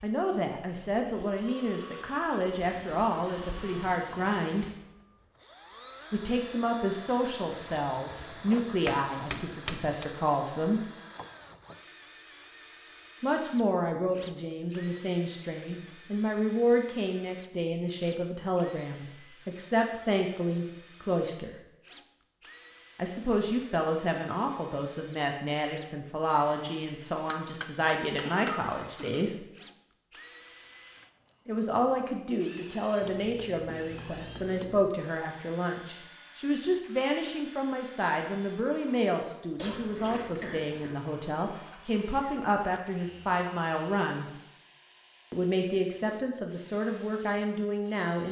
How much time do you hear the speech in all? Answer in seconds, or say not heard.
40 s.